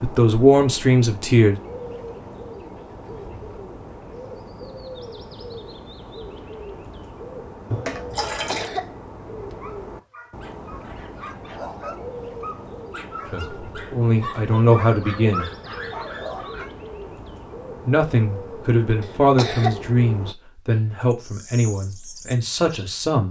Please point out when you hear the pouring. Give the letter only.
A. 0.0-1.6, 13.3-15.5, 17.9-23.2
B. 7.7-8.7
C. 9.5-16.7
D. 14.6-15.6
B.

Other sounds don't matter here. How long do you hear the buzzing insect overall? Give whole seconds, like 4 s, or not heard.
not heard.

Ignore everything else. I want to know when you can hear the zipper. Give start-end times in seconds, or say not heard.
not heard.